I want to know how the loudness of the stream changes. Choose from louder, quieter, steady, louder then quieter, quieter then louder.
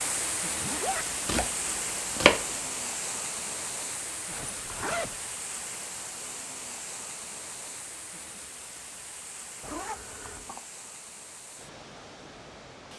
quieter.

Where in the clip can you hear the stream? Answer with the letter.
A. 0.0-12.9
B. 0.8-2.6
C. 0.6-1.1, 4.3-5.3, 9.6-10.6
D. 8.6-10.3
A.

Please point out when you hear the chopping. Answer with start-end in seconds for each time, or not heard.
0.8-2.6.